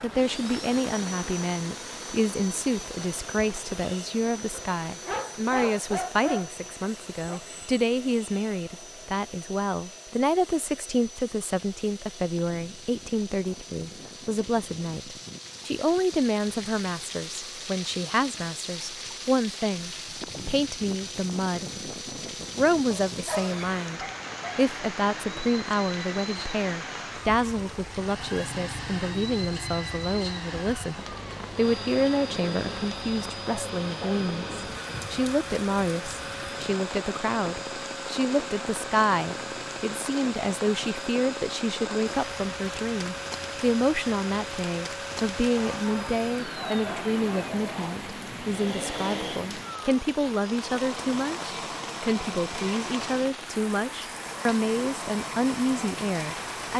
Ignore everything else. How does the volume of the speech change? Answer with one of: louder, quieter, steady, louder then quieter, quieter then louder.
steady.